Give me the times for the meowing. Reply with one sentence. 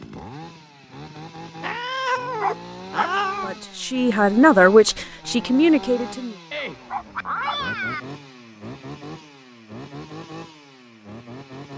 You can hear the meowing from 1.6 to 3.5 s and from 6.5 to 8.0 s.